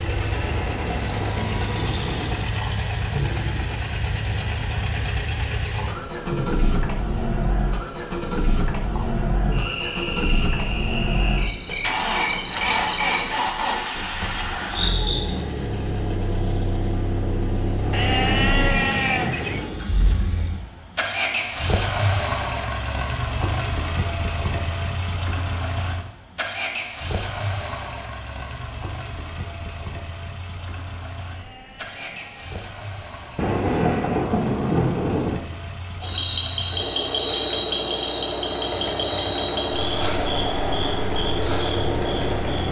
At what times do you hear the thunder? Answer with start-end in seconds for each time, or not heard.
0.4-2.5, 17.8-19.9, 33.4-35.4.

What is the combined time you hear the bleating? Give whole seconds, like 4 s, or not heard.
5 s.